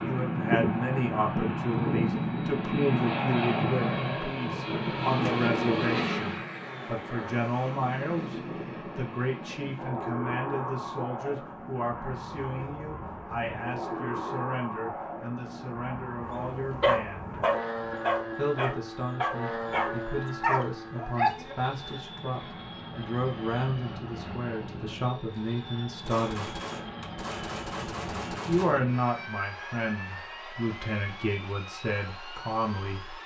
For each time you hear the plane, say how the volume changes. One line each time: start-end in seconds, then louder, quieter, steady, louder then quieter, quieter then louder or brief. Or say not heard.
0.0-33.2 quieter.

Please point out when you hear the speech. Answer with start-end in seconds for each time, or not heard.
0.0-17.4, 18.4-26.6, 28.4-33.2.